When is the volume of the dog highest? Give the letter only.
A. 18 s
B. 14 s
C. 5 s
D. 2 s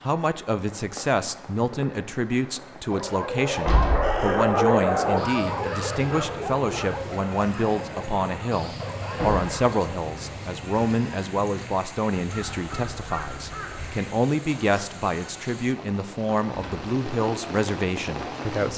C.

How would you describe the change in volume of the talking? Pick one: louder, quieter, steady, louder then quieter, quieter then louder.
steady.